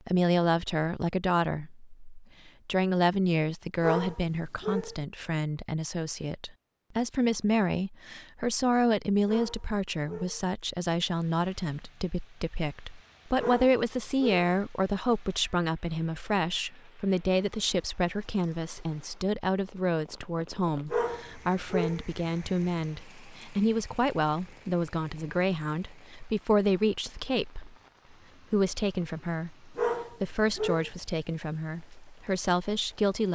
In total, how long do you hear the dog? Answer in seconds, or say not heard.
6 s.